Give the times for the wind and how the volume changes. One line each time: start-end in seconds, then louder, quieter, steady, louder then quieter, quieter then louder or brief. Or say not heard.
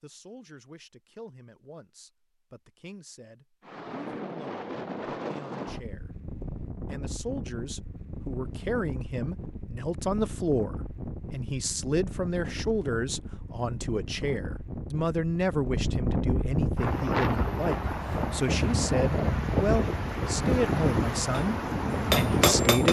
3.6-22.8 louder.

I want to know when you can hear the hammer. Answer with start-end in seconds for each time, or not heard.
21.3-22.8.